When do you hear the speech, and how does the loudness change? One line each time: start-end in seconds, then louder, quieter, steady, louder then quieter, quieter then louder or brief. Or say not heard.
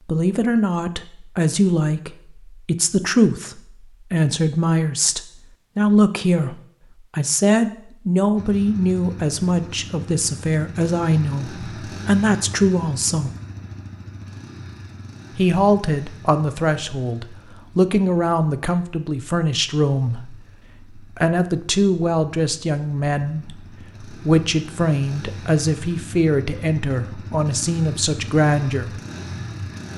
0.1-13.3 steady
15.3-29.0 steady.